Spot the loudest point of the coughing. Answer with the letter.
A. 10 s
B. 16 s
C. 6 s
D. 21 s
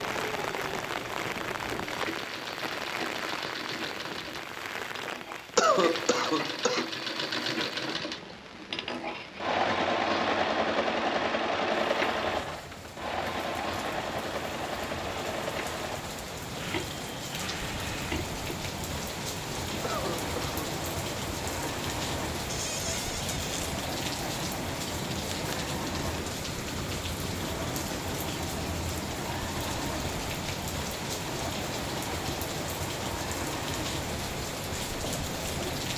C.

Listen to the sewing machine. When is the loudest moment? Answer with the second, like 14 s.
10 s.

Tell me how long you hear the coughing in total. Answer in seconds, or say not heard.
2 s.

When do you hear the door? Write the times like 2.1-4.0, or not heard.
22.4-23.6.